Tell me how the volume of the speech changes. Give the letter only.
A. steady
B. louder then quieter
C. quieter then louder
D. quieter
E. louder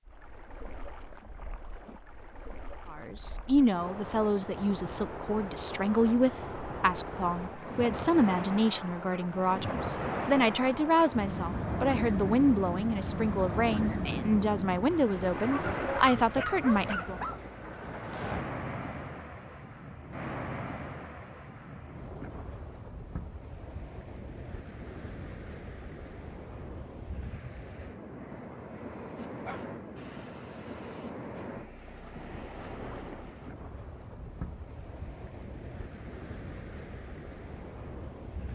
A.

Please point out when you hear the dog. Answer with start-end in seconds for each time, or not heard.
15.5-17.4, 29.1-31.4.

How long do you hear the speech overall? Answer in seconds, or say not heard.
14 s.